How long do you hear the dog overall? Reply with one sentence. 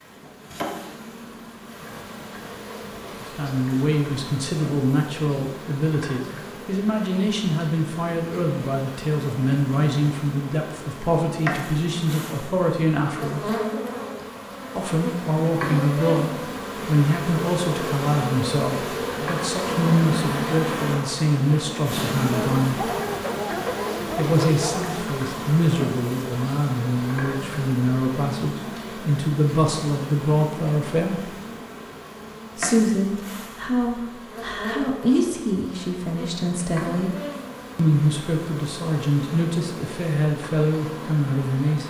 The dog can be heard for 3 seconds in total.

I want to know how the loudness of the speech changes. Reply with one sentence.
The volume of the speech stays about the same.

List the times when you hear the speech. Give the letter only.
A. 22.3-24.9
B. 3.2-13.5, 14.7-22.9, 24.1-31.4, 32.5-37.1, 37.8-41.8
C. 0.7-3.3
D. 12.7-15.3
B.